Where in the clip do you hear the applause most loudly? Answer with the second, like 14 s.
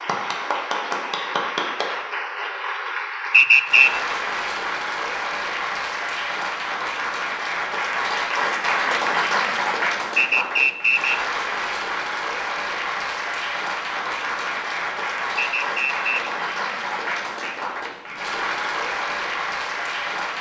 9 s.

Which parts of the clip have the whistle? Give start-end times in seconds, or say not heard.
3.3-3.9, 10.2-11.2, 15.3-16.1.